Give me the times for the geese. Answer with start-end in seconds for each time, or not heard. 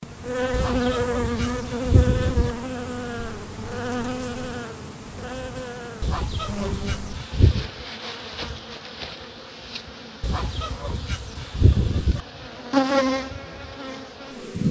0.5-2.5, 6.0-7.7, 10.2-12.2.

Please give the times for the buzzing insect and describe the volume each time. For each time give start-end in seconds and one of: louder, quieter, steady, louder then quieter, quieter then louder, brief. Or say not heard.
0.0-14.6 quieter then louder.